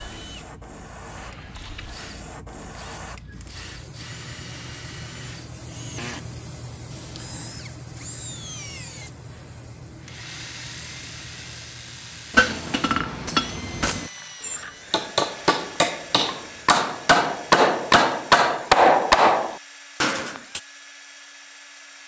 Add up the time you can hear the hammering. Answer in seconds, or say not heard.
8 s.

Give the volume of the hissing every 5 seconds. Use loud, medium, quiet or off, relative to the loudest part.
loud, loud, medium, off, off.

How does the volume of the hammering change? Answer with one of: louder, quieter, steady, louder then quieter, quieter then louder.
louder.